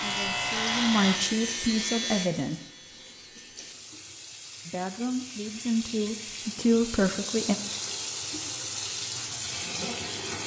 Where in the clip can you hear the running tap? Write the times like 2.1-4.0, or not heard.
0.0-10.4.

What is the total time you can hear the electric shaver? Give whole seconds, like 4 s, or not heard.
4 s.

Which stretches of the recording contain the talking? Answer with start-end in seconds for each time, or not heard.
0.0-2.5, 4.7-7.5.